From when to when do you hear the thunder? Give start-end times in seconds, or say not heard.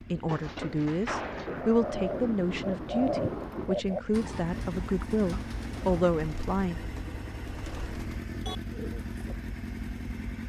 0.2-3.8.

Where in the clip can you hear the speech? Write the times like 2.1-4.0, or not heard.
0.1-6.8.